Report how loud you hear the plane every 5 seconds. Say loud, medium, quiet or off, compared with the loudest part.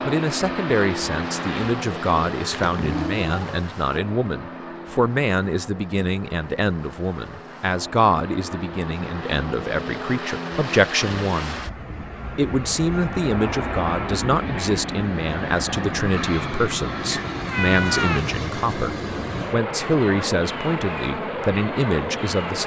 loud, medium, loud, loud, loud.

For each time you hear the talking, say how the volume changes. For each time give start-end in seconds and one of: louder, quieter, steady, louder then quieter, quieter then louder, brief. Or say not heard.
0.0-11.6 steady
12.3-22.6 steady.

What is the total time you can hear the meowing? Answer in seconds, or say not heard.
2 s.